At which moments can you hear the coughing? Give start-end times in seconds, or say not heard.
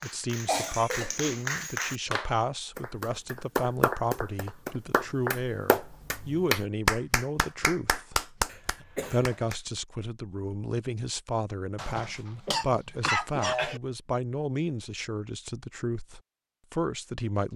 0.5-1.4, 8.4-9.4, 11.8-13.8.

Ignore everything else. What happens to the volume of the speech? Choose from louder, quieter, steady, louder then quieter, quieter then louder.
steady.